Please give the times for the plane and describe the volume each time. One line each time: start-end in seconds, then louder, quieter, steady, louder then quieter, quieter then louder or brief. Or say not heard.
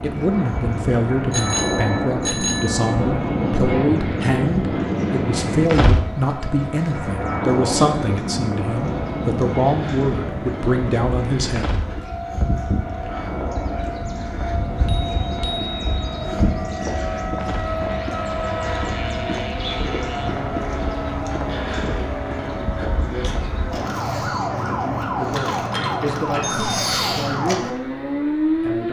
0.0-22.6 quieter.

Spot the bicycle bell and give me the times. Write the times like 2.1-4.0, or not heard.
1.3-3.0, 14.8-16.4, 26.4-26.9.